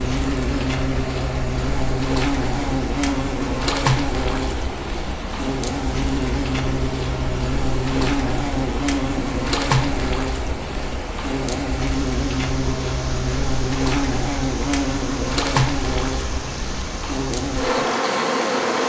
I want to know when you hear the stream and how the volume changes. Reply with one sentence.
The stream can be heard from 0.0 to 18.8 s, at a steady volume.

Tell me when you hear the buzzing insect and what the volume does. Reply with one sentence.
The buzzing insect can be heard from 0.0 to 18.8 s, at a steady volume.